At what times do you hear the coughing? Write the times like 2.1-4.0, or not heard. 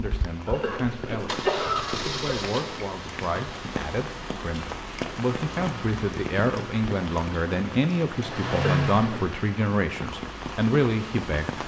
0.5-2.4, 8.5-9.2.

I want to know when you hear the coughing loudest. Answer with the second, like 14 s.
2 s.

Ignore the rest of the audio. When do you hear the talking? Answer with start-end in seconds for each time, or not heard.
0.0-11.6.